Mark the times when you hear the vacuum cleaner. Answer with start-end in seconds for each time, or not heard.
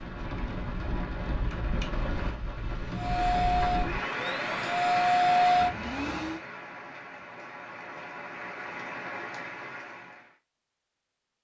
2.9-6.4.